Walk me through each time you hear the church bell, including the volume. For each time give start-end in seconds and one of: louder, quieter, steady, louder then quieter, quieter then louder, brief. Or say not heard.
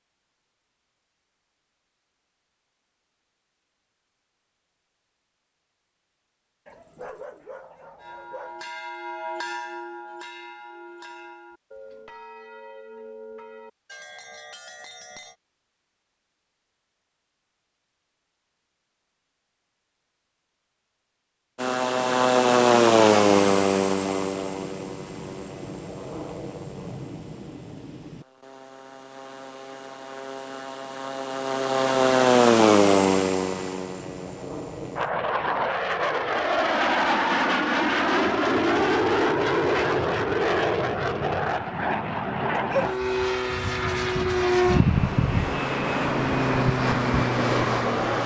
8.0-15.3 quieter.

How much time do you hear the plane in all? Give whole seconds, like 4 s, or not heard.
27 s.